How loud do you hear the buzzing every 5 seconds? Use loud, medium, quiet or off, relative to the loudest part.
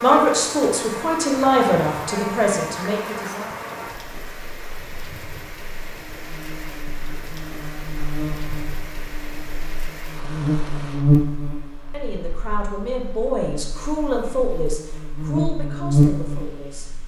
medium, quiet, loud, loud.